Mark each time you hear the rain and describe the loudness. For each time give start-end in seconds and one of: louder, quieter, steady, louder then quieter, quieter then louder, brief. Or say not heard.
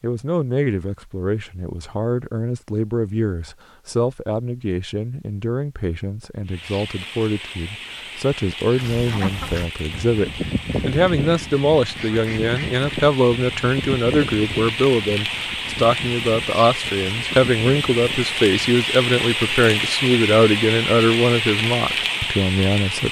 6.5-23.0 louder.